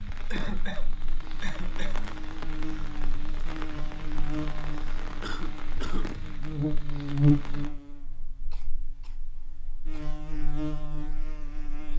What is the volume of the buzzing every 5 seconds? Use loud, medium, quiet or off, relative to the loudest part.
medium, loud, medium.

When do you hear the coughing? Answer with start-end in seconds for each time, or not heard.
0.3-2.0, 5.2-6.2, 8.5-10.2.